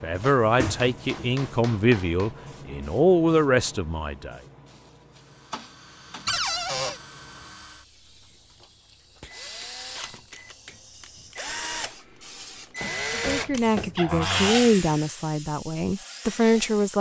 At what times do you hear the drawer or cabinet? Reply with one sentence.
The drawer or cabinet can be heard from 0.1 to 1.5 s, from 6.2 to 7.0 s and from 13.9 to 14.7 s.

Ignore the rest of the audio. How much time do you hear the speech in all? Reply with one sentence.
The speech can be heard for 8 seconds in total.